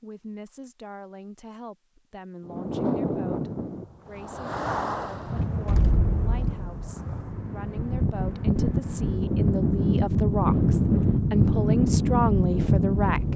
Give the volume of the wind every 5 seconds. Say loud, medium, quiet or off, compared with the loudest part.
medium, medium, loud.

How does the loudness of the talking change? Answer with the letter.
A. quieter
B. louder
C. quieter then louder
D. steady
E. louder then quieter
B.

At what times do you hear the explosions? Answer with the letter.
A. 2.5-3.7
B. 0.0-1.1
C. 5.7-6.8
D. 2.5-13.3
C.